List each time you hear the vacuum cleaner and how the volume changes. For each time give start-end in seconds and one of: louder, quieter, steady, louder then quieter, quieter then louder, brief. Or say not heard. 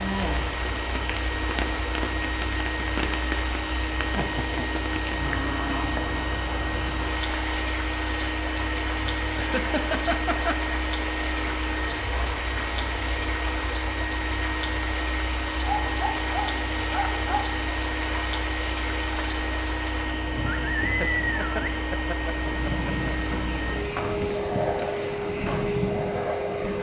0.0-26.7 steady.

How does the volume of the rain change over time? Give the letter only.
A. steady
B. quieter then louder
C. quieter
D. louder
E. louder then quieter
A.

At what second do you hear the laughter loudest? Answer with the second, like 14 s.
10 s.